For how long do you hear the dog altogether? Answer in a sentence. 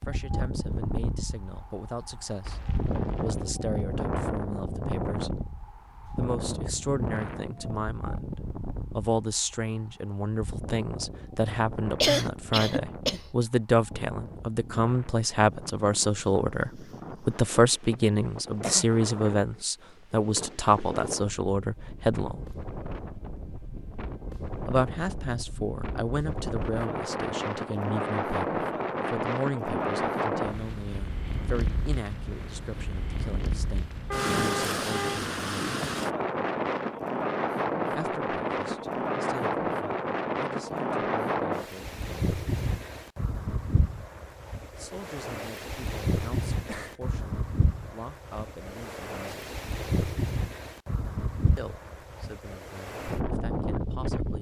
You can't hear the dog here.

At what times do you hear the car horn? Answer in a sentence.
The car horn can be heard from 2.4 to 3.5 s and from 34.1 to 35.3 s.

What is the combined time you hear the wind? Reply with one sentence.
The wind can be heard for 54 seconds in total.